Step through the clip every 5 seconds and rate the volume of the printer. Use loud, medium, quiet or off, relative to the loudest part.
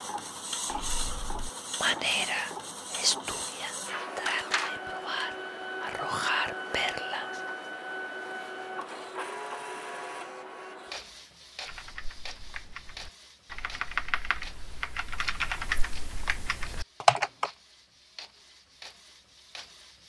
loud, loud, medium, quiet.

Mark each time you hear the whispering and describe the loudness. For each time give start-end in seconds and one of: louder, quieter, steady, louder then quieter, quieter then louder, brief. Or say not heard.
0.7-7.4 quieter then louder.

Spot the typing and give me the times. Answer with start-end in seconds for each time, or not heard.
11.7-17.5.